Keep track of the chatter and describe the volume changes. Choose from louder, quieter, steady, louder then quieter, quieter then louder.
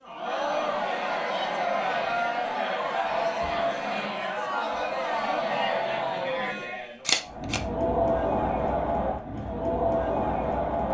steady.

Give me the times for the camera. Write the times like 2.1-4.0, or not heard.
7.0-7.6.